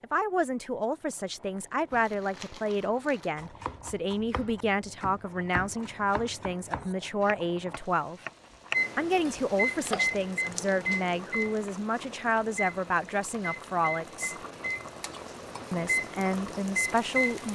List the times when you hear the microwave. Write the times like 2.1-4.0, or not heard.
8.7-17.5.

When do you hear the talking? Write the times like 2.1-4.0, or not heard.
0.0-8.2, 8.9-14.3, 15.7-17.5.